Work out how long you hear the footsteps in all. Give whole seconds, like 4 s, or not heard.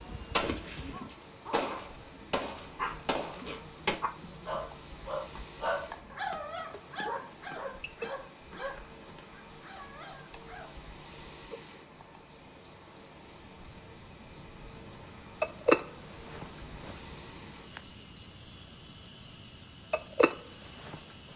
not heard.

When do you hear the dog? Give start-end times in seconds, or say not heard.
0.8-10.8.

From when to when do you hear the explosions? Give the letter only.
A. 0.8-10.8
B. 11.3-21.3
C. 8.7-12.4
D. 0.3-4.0
D.